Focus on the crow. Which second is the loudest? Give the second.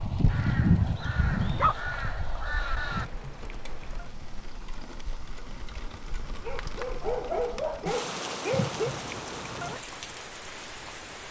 1 s.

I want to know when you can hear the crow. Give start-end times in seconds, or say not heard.
0.0-3.0.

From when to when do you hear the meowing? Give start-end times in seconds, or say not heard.
2.9-4.2, 8.5-9.8.